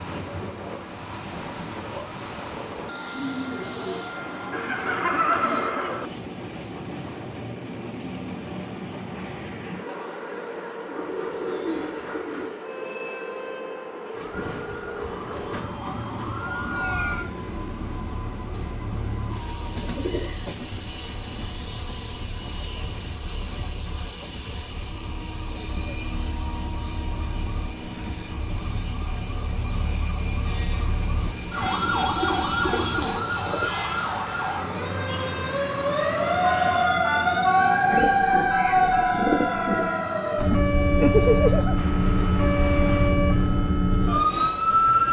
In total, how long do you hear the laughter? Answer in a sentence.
You can hear the laughter for 3 seconds altogether.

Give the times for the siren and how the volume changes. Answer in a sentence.
The siren can be heard from 14.1 to 45.0 s, getting quieter then louder.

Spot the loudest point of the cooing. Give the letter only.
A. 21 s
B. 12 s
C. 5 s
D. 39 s
D.